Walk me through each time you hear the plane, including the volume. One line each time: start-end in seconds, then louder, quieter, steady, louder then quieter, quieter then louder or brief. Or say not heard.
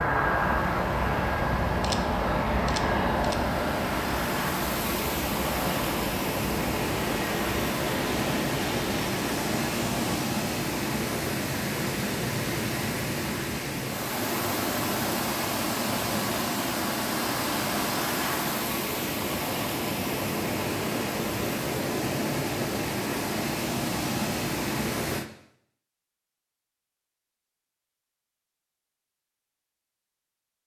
0.0-10.2 quieter.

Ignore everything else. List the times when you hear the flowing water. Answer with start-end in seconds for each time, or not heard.
0.0-25.2.